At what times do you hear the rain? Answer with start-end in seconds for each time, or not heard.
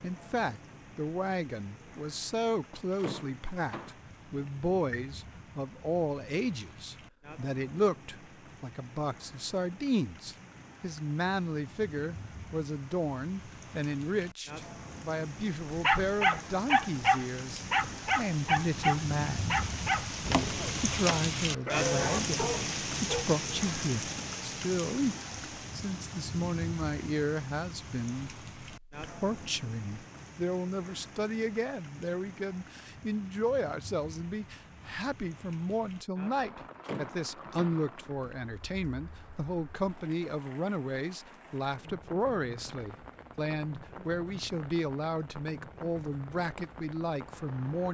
0.0-47.9.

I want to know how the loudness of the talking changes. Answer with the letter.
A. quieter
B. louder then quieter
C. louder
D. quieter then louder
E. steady
E.